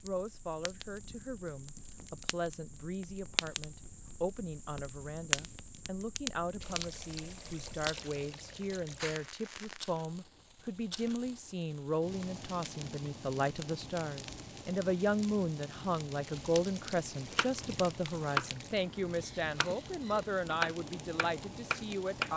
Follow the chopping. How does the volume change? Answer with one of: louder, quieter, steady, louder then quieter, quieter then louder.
quieter then louder.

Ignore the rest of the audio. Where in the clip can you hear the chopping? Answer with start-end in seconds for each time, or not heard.
17.2-22.3.